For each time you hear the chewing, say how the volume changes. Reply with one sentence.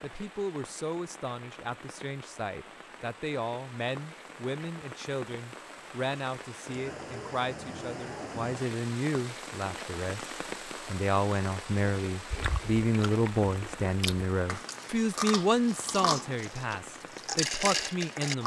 You can hear the chewing from 12.3 to 18.4 s, getting louder.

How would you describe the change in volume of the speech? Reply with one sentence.
The volume of the speech goes up.